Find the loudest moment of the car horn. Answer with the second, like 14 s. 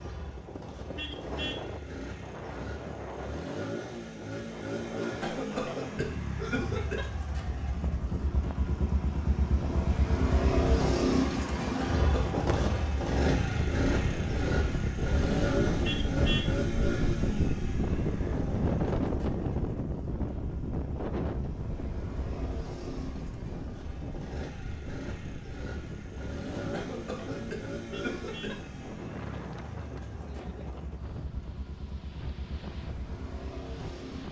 16 s.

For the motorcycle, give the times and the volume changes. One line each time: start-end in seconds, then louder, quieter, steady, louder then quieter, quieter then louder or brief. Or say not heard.
0.0-34.2 louder then quieter.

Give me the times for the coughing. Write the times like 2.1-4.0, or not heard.
5.0-7.0, 11.6-12.4, 26.6-28.6.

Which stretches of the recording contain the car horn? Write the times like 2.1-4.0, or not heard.
0.9-1.6, 15.8-16.5, 27.9-28.6.